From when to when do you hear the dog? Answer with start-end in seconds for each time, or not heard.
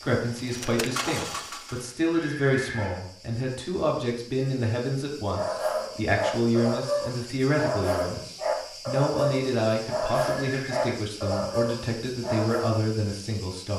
5.3-12.8.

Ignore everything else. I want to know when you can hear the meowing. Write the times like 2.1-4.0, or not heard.
not heard.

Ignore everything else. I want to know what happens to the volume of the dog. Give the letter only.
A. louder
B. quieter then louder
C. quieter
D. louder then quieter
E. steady
E.